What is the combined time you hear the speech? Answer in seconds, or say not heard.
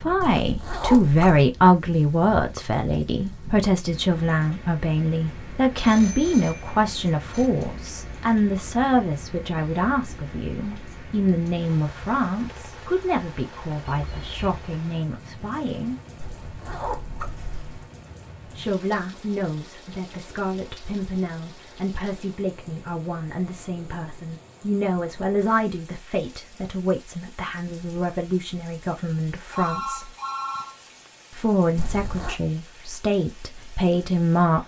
31 s.